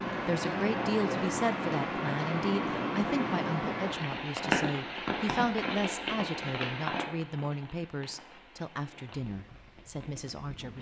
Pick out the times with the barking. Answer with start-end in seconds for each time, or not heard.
not heard.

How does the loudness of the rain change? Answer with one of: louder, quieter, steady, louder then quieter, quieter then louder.
quieter.